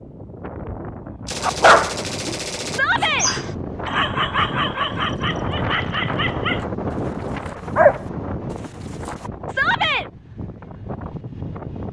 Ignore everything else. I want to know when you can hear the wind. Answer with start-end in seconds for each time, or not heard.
0.0-11.8.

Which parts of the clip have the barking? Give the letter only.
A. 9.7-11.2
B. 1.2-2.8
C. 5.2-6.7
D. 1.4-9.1
D.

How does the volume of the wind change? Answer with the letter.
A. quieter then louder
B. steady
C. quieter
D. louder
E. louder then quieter
E.